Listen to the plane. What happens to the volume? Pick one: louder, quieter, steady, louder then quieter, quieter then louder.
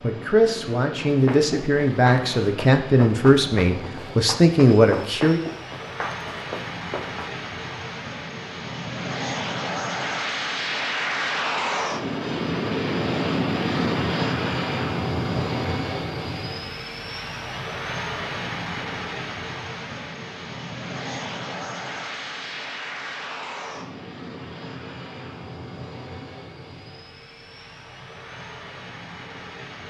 louder then quieter.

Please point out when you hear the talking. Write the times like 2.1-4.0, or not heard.
0.0-5.4.